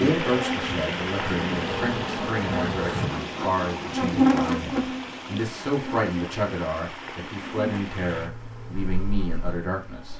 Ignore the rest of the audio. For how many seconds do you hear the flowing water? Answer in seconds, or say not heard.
10 s.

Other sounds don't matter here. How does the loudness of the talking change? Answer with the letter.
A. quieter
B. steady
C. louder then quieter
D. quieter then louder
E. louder
B.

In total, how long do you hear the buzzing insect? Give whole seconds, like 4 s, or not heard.
10 s.